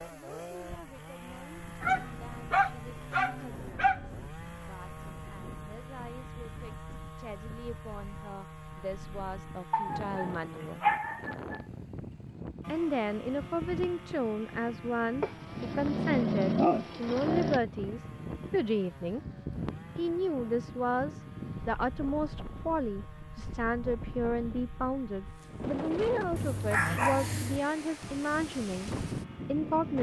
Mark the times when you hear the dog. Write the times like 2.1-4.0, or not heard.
1.8-4.0, 9.7-11.6, 15.2-17.6, 26.4-27.6.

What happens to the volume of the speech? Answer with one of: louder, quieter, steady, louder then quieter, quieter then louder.
louder.